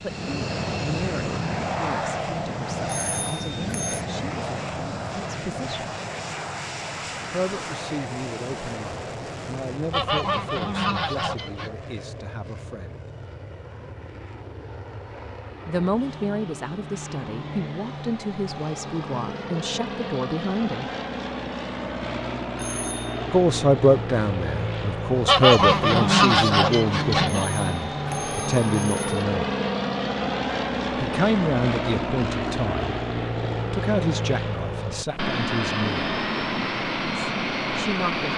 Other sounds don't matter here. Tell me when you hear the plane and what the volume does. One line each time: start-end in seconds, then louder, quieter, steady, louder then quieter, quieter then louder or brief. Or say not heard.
0.0-38.3 quieter then louder.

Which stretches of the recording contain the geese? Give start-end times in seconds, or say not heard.
9.9-11.7, 25.2-27.5.